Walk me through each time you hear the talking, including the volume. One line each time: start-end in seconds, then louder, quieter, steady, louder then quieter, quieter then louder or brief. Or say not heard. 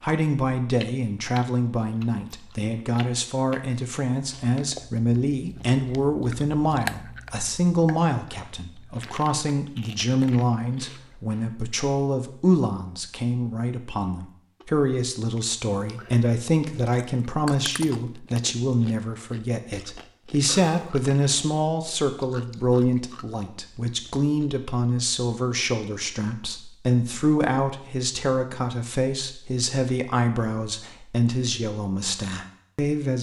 0.0-33.1 steady.